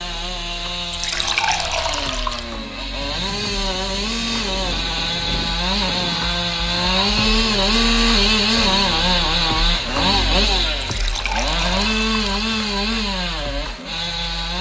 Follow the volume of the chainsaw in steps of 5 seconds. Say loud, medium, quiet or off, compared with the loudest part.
medium, loud, loud.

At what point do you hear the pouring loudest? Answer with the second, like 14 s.
1 s.